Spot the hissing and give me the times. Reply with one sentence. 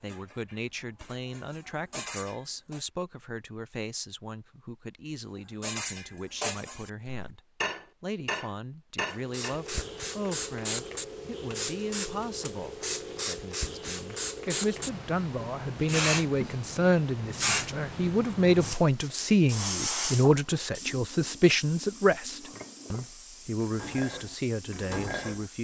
You can hear the hissing from 9.2 to 25.5 s.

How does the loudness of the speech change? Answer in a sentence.
The volume of the speech goes up.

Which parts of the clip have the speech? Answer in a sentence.
The speech can be heard from 0.0 to 7.4 s and from 8.0 to 25.5 s.